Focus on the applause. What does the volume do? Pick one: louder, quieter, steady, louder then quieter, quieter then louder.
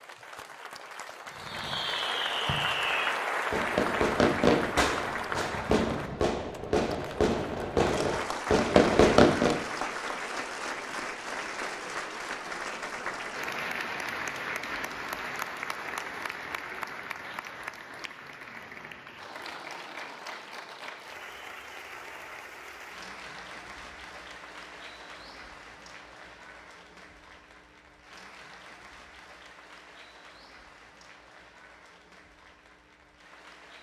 quieter.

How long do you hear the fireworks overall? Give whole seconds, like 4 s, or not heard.
8 s.